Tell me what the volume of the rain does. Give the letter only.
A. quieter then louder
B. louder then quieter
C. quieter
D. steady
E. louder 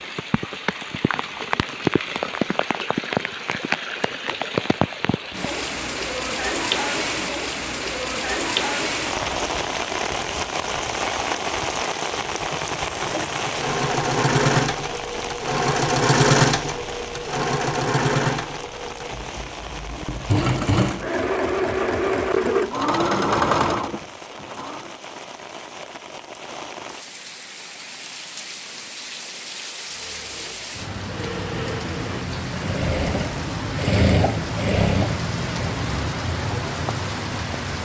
A.